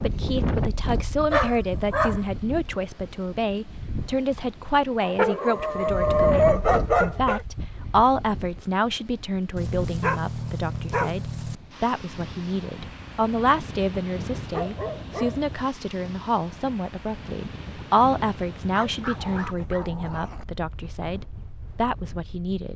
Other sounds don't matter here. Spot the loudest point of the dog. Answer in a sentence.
The volume of the dog peaks at 6 seconds.